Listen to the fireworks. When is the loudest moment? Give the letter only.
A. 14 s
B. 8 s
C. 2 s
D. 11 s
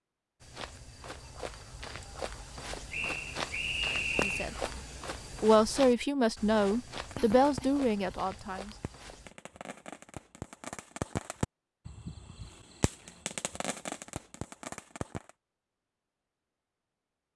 D.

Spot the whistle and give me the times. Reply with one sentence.
The whistle can be heard from 2.9 to 4.5 s.